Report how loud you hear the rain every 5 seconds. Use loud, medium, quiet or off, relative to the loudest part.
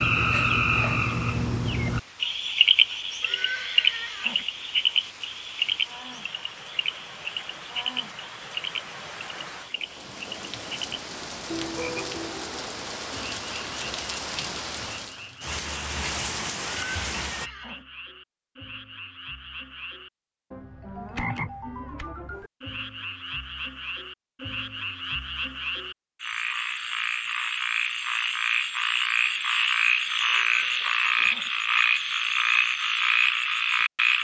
quiet, medium, loud, loud, off, off, off.